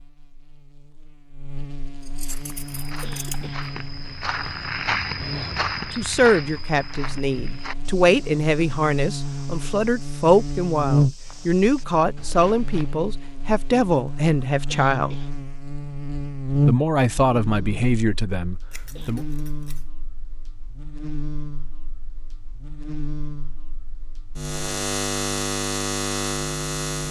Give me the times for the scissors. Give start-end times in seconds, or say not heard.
2.0-3.6, 18.7-19.9.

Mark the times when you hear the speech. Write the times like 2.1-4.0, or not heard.
6.0-15.2, 16.6-19.2.